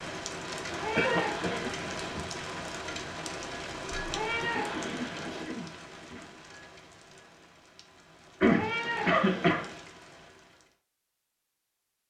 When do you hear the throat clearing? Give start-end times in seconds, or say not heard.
0.9-1.7, 4.7-6.3, 8.4-9.7.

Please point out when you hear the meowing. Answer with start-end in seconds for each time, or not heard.
0.7-2.3, 4.0-5.5, 8.4-9.8.